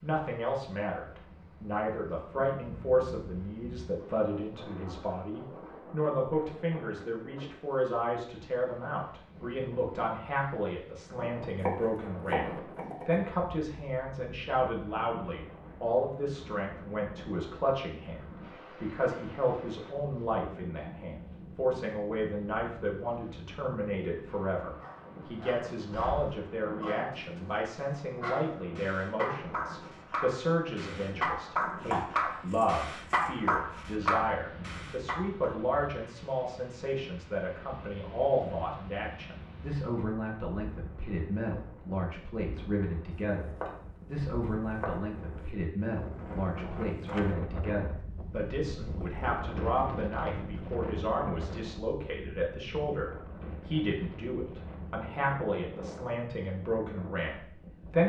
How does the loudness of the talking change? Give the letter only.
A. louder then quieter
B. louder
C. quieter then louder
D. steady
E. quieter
D.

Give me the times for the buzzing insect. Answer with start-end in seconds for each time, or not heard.
not heard.